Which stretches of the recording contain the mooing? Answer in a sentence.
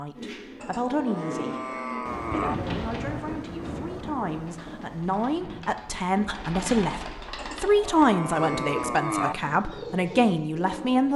You can hear the mooing from 0.6 to 2.5 s and from 7.3 to 9.3 s.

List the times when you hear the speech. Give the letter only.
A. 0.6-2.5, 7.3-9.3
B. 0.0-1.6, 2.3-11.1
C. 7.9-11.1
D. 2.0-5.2
B.